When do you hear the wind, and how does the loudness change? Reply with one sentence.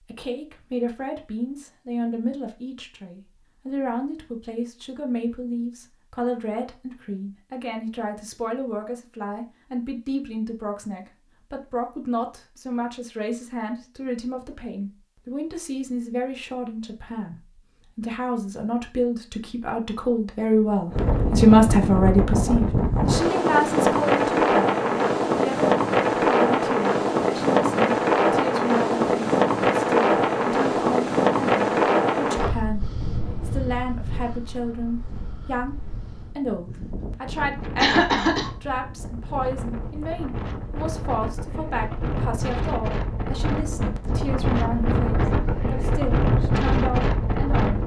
The wind can be heard from 20.9 to 47.8 s, getting quieter then louder.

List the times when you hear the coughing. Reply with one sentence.
You can hear the coughing from 37.8 to 38.5 s.